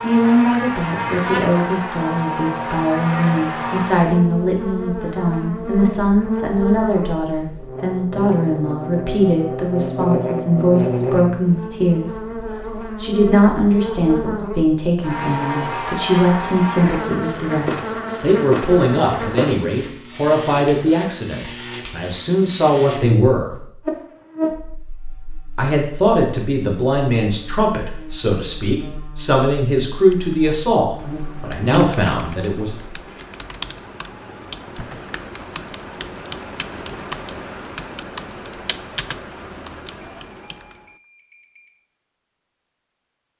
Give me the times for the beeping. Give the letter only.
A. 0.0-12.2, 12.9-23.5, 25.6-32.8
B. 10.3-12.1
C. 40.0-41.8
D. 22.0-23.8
C.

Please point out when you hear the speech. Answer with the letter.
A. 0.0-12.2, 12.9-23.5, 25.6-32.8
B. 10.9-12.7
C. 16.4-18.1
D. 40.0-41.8
A.